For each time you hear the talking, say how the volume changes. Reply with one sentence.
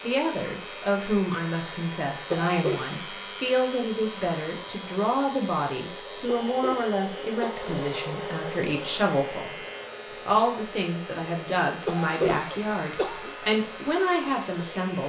You can hear the talking from 0.0 to 15.0 s, at a steady volume.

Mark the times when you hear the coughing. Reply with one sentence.
The coughing can be heard from 2.3 to 3.0 s, from 6.2 to 7.8 s and from 11.8 to 13.3 s.